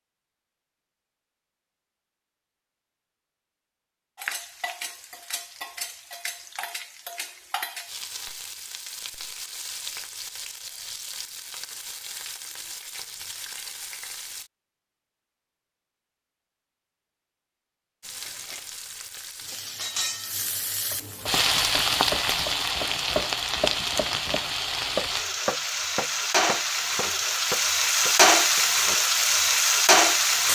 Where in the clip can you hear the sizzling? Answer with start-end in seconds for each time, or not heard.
4.2-14.5, 18.0-30.4.